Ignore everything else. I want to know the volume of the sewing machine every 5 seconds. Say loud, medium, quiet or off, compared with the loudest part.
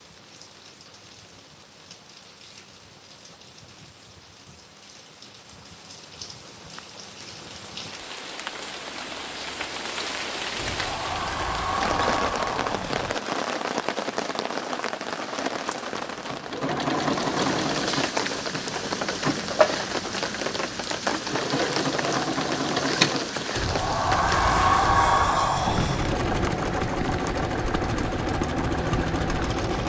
off, off, off, loud, loud, loud.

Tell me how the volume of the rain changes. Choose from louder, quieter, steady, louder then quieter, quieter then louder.
louder.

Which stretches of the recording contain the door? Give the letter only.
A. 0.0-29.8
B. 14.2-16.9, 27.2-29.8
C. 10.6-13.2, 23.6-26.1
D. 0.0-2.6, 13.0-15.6
C.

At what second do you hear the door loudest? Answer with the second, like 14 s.
25 s.